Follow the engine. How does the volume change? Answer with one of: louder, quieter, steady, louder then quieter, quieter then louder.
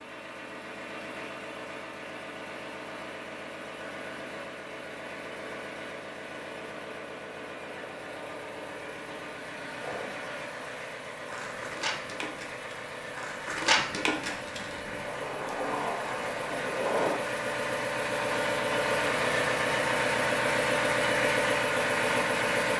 louder.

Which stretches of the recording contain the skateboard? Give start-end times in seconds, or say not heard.
9.8-17.2.